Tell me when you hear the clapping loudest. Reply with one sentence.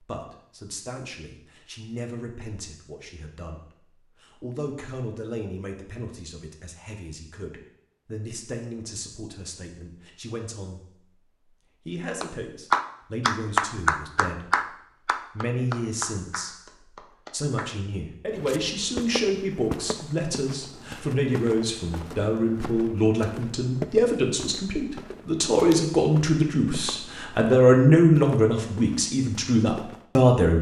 The loudest moment of the clapping is at 14 seconds.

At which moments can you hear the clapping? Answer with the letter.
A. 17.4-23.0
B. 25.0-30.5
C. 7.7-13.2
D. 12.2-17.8
D.